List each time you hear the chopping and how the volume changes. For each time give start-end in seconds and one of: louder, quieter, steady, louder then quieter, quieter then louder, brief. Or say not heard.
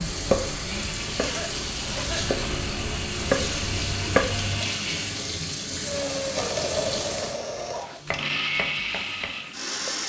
0.0-4.6 louder
8.1-10.0 brief.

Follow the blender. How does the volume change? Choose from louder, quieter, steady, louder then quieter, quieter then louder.
louder.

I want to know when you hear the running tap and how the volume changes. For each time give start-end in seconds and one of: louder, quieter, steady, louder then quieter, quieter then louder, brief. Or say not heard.
0.0-10.0 quieter.